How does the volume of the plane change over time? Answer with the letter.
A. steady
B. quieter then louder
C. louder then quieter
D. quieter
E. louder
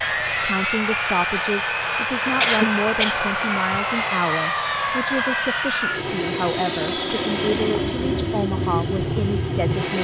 A.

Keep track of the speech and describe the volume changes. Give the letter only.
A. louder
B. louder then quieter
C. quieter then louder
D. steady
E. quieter
D.